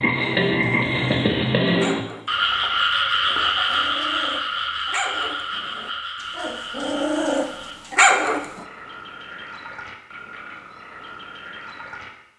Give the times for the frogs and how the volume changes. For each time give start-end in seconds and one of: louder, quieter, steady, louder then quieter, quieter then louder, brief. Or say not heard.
0.0-12.3 quieter.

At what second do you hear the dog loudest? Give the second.
8 s.